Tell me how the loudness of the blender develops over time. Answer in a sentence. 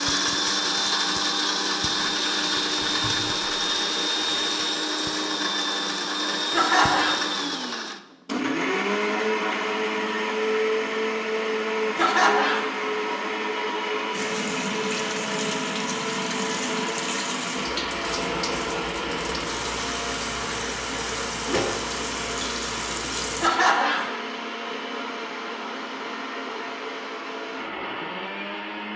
The loudness of the blender goes down.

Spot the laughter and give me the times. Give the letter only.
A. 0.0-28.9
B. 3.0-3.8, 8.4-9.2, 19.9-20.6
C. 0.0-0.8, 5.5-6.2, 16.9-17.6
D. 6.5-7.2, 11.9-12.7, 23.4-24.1
D.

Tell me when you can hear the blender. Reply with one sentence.
You can hear the blender from 0.0 to 28.9 s.